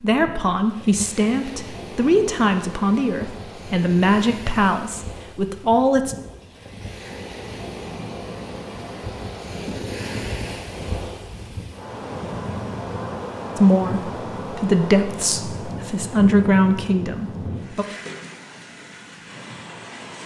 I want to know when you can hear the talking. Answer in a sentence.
The talking can be heard from 0.0 to 6.2 s and from 13.6 to 17.9 s.